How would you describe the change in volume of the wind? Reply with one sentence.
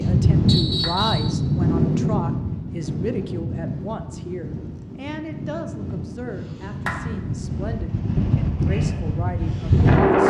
The loudness of the wind goes down, then up.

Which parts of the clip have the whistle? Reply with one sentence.
The whistle can be heard from 0.5 to 1.3 s.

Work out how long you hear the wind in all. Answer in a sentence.
The wind can be heard for 10 seconds in total.